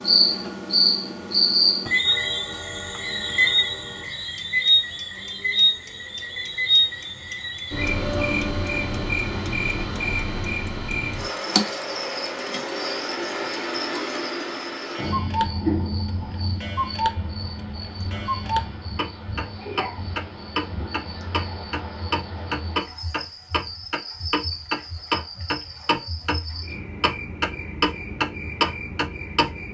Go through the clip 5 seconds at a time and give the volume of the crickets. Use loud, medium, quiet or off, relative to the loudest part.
loud, loud, medium, medium, quiet, quiet.